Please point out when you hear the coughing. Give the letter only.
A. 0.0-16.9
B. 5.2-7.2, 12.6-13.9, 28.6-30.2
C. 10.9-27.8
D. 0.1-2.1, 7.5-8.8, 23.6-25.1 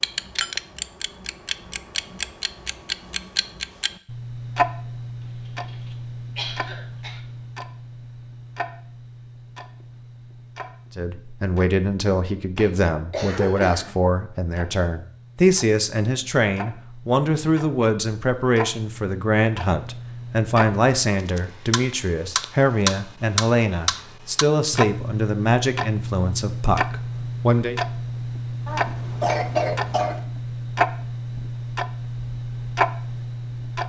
B.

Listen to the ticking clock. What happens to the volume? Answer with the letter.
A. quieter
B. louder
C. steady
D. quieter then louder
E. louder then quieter
D.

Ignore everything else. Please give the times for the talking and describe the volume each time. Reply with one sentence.
You can hear the talking from 10.9 to 27.8 s, at a steady volume.